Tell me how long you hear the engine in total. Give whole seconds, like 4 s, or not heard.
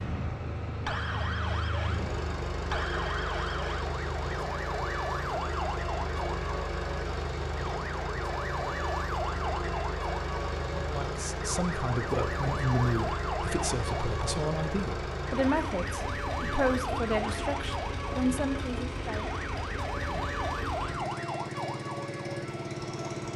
23 s.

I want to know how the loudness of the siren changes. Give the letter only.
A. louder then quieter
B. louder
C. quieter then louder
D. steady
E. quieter
D.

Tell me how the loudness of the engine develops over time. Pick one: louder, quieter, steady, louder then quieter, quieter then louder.
steady.